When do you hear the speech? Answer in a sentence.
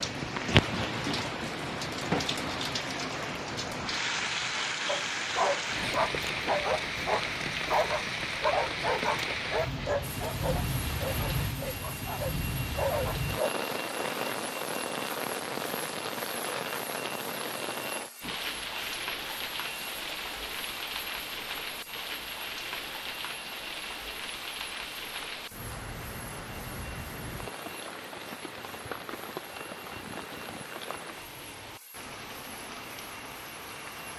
You can't hear the speech here.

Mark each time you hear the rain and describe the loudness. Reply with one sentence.
You can hear the rain from 0.0 to 34.1 s, getting quieter.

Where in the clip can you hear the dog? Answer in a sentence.
The dog can be heard from 4.8 to 13.5 s.